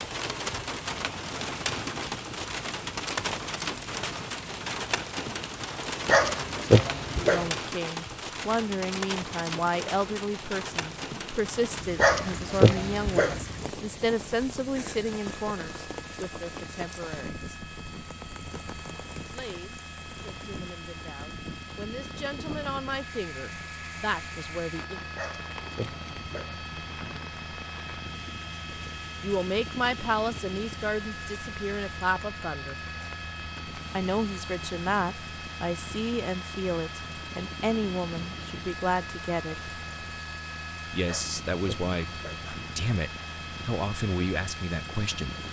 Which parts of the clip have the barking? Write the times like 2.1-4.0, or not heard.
6.0-7.5, 11.9-13.4, 25.1-26.6, 41.0-42.5.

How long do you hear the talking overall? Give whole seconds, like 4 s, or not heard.
30 s.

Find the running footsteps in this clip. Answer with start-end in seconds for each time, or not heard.
not heard.